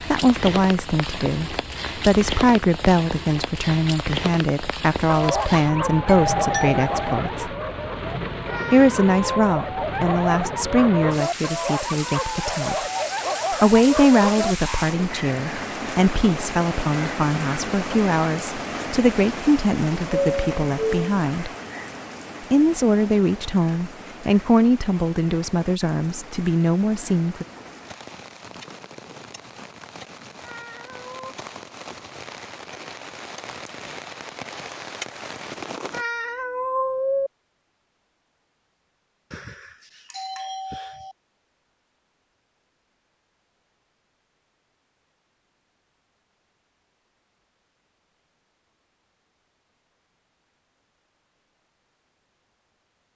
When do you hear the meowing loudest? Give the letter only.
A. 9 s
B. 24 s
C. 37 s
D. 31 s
C.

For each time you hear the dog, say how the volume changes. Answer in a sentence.
The dog can be heard from 5.0 to 14.9 s, getting quieter then louder.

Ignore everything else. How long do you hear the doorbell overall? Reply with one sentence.
You can hear the doorbell for 4 seconds altogether.